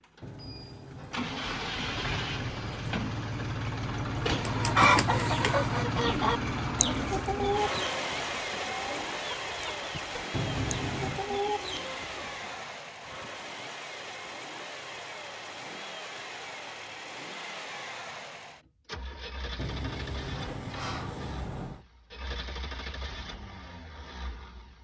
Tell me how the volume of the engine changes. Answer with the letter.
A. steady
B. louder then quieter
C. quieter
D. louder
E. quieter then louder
C.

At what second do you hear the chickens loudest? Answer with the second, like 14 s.
5 s.